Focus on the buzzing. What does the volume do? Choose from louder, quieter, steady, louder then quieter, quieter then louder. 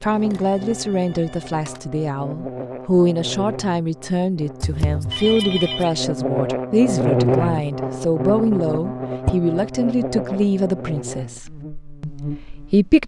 louder then quieter.